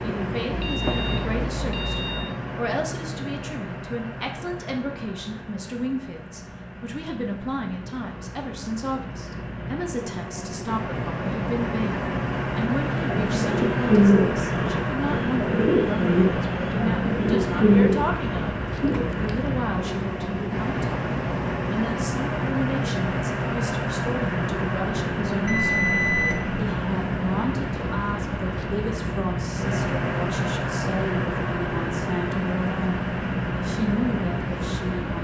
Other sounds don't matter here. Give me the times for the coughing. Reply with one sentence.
The coughing can't be heard in this clip.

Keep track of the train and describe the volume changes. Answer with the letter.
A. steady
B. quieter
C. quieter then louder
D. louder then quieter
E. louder
E.